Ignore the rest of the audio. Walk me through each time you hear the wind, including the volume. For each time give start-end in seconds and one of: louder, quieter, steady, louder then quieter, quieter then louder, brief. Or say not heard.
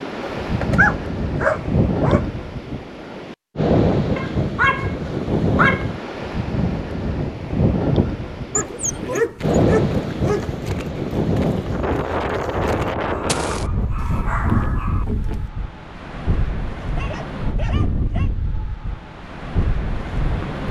0.0-20.6 quieter.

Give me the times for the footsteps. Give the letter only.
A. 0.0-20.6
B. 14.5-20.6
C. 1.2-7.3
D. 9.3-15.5
D.